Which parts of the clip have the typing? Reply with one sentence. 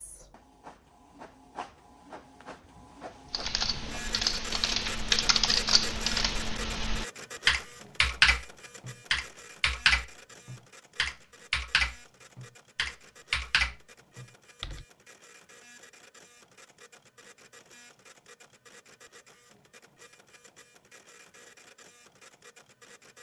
You can hear the typing from 3.3 to 14.8 s.